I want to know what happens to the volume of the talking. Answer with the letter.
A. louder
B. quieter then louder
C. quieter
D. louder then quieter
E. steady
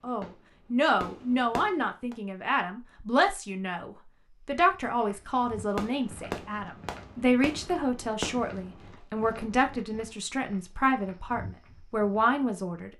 E.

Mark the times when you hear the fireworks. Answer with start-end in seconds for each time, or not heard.
0.0-2.1, 5.7-8.6.